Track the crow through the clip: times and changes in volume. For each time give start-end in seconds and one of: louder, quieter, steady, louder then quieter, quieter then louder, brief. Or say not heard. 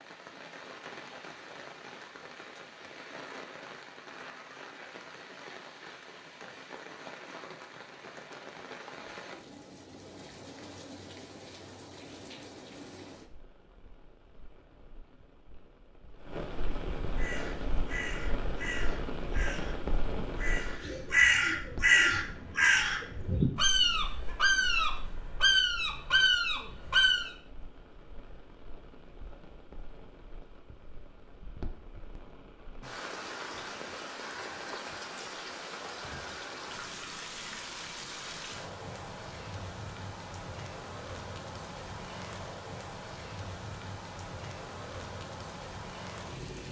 17.1-27.3 louder.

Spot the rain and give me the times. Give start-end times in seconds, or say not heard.
0.0-46.6.